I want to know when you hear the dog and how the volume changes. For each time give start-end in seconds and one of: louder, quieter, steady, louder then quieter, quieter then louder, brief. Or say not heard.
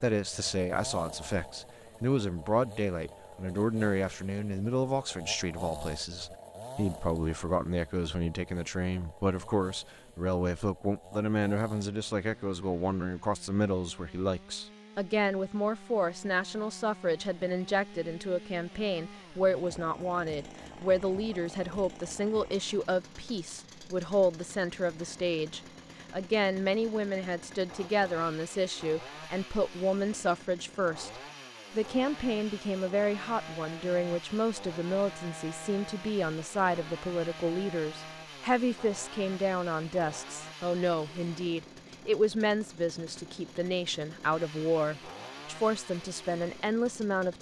not heard.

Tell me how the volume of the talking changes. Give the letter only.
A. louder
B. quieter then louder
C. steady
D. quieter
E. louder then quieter
C.